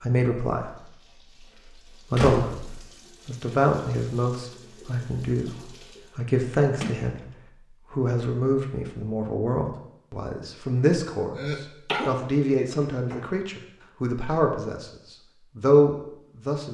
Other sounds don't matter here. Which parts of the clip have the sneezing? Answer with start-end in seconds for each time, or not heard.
11.3-12.2.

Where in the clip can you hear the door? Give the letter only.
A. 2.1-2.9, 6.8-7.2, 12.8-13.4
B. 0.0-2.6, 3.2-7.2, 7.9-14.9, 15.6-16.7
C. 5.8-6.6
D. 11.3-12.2
A.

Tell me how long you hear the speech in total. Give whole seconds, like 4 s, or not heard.
15 s.